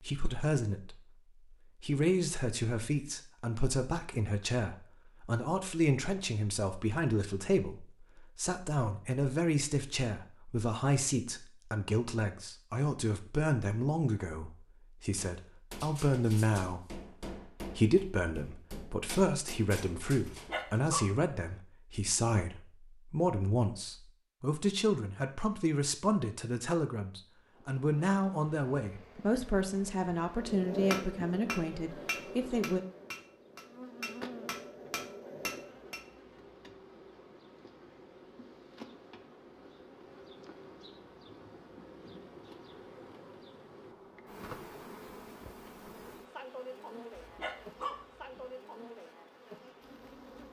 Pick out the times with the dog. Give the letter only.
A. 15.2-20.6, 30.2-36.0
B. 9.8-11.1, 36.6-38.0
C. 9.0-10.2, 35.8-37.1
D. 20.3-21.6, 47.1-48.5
D.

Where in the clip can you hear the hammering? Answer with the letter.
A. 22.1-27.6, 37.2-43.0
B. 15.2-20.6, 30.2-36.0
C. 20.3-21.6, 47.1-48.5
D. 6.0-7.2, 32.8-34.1
B.